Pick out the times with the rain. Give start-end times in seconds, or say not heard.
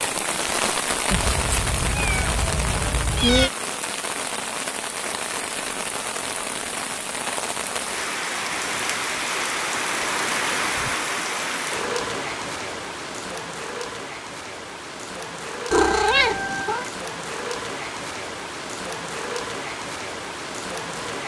0.0-21.2.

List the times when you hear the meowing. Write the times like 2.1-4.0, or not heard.
1.1-3.5, 15.7-16.9.